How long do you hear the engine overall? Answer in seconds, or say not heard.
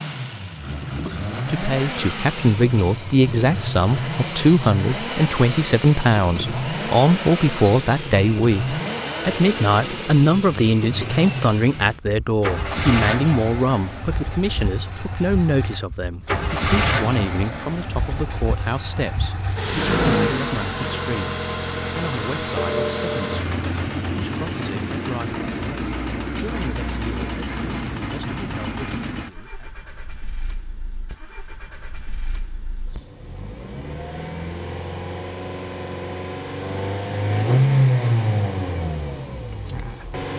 40 s.